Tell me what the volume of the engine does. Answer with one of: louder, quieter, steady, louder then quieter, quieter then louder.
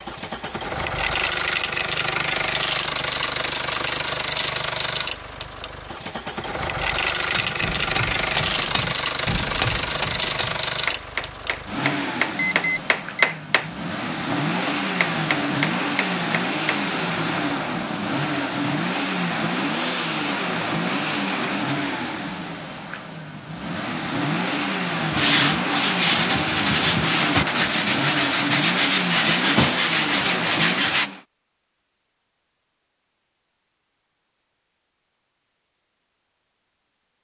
steady.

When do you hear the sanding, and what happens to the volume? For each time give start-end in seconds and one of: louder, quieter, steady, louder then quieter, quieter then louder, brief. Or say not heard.
25.1-31.1 steady.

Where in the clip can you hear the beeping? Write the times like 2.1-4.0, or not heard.
12.3-13.3.